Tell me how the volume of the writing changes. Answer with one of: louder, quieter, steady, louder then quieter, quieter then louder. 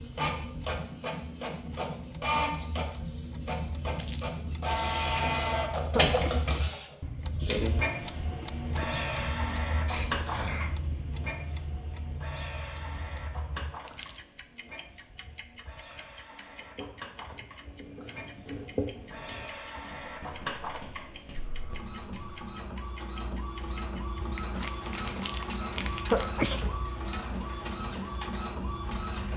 louder then quieter.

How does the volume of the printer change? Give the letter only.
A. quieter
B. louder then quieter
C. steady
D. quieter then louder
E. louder
D.